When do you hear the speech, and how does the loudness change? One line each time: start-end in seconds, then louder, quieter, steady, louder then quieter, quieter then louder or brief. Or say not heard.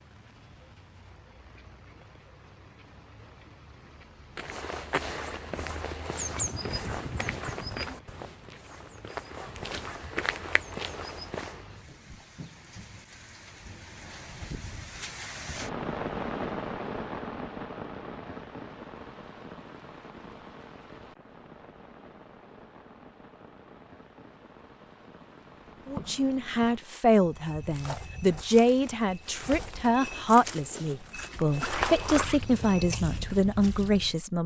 25.9-34.4 steady.